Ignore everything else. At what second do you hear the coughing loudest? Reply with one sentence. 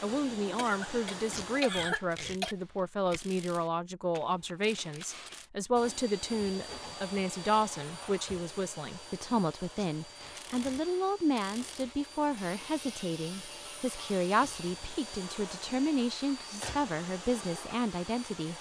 The volume of the coughing peaks at 2 seconds.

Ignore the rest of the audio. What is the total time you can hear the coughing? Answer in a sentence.
The coughing can be heard for 2 seconds in total.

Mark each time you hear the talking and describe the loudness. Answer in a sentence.
You can hear the talking from 0.0 to 18.5 s, at a steady volume.